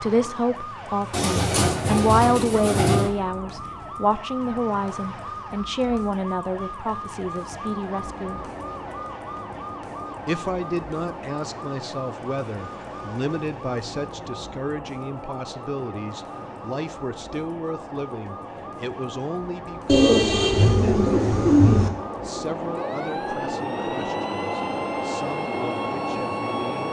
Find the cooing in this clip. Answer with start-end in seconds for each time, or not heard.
1.1-3.1, 19.9-21.9.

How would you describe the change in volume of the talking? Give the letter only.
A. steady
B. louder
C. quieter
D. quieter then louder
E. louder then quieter
C.